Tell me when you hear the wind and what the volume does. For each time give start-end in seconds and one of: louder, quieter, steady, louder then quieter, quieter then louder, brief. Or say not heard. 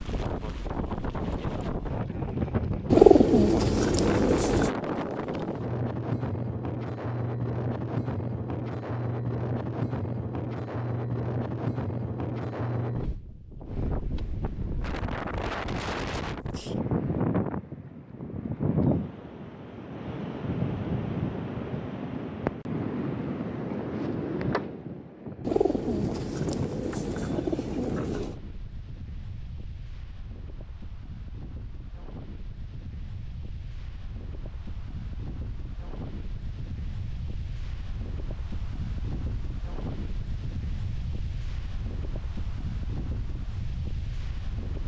0.0-44.8 quieter.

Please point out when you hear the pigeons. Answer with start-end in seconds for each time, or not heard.
2.9-4.7, 25.4-28.4.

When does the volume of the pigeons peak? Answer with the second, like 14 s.
3 s.